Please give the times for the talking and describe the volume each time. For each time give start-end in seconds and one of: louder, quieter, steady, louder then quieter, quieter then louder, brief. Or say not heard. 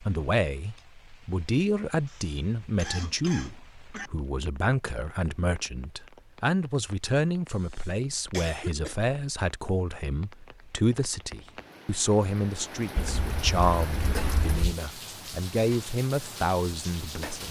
0.0-17.4 steady.